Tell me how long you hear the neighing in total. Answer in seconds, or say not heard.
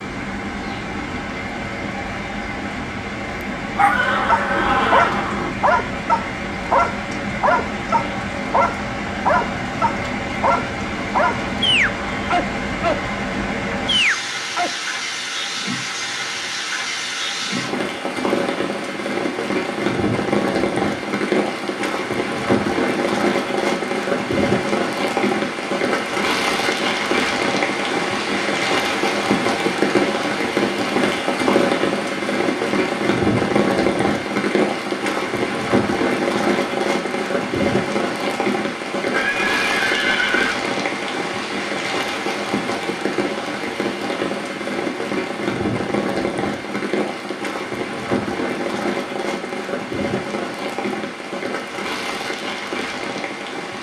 3 s.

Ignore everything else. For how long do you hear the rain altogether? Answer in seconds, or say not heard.
54 s.